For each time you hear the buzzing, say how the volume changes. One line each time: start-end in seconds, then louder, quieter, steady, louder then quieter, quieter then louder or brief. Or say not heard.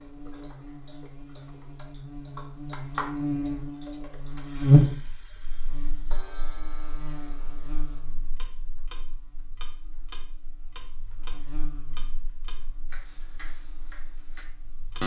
0.0-15.0 louder then quieter.